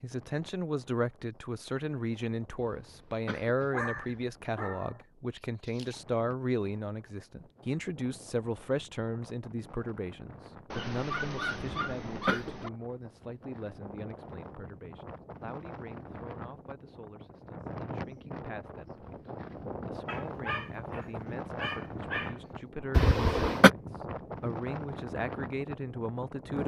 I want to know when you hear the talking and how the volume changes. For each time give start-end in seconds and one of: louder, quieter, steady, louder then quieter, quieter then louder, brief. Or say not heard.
0.0-26.6 quieter then louder.